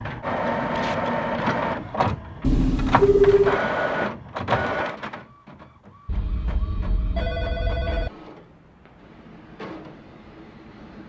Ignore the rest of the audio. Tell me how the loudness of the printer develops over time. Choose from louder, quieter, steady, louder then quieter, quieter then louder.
quieter.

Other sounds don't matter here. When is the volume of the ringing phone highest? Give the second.
3 s.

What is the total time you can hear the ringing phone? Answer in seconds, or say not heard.
3 s.